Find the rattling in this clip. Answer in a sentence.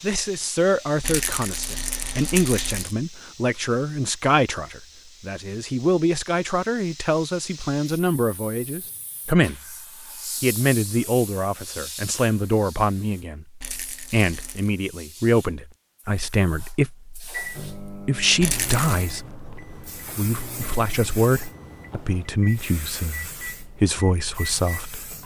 The rattling can be heard from 1.0 to 3.0 s, from 13.6 to 14.8 s and from 18.4 to 19.1 s.